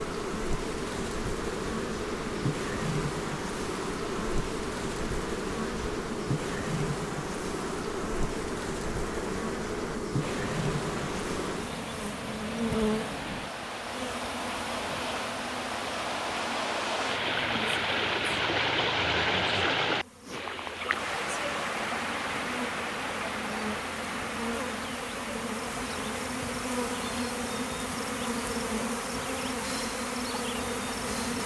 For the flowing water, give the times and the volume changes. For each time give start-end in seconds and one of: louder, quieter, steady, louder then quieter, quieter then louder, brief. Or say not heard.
0.0-31.4 louder then quieter.